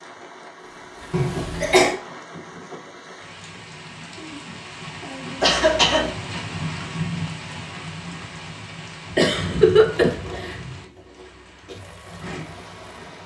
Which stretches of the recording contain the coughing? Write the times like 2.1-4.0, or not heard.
1.1-1.9, 5.4-6.1, 9.1-10.6.